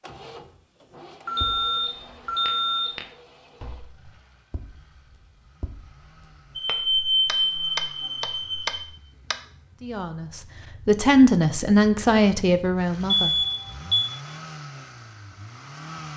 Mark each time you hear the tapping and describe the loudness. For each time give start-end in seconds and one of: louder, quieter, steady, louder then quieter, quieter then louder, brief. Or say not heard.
1.4-9.3 quieter then louder.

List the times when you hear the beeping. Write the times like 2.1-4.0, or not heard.
1.2-2.9, 6.5-8.8, 13.1-14.1.